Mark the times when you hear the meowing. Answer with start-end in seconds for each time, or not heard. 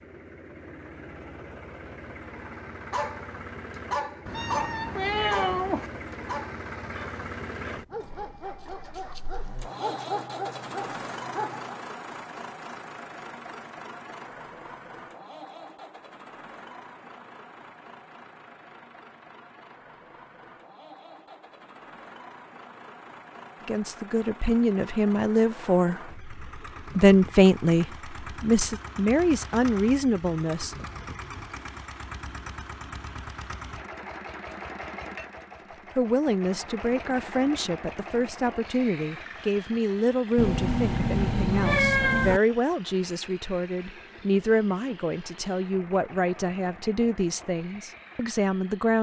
4.2-5.9, 40.4-42.4.